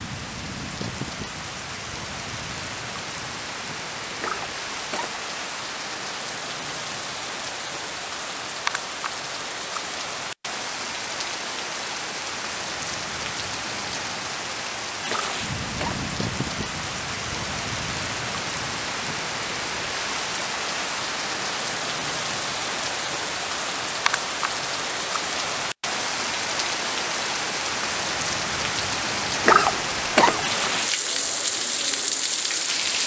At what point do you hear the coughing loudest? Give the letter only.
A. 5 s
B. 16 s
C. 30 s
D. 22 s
C.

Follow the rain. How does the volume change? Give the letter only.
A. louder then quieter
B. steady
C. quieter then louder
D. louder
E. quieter
D.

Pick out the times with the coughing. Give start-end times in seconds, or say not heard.
4.2-5.2, 15.1-16.1, 29.4-30.4.